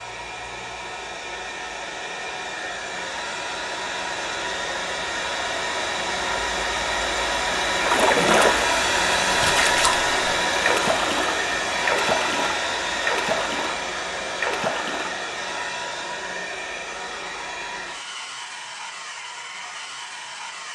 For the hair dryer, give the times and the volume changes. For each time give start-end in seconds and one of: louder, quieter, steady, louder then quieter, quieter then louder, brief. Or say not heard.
0.0-20.7 louder then quieter.